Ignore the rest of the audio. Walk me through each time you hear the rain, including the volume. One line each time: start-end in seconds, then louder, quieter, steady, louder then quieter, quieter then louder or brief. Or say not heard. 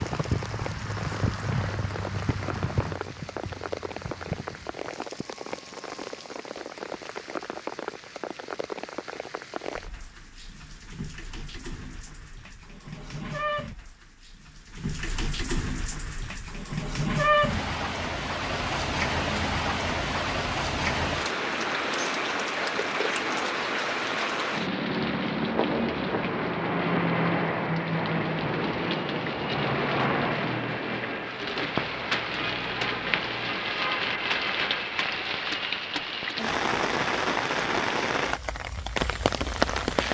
0.0-40.0 louder.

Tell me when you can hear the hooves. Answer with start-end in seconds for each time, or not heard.
0.0-4.9.